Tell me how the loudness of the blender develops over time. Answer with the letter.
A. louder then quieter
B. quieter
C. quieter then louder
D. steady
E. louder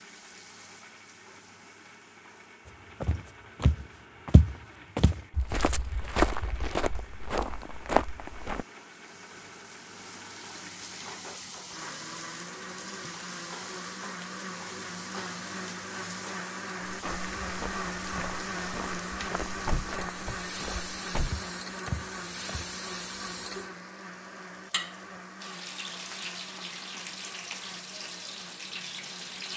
A.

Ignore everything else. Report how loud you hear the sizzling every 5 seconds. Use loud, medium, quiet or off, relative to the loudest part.
quiet, quiet, loud, loud, loud, loud.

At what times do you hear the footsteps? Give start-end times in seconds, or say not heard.
2.6-8.7, 16.8-22.8.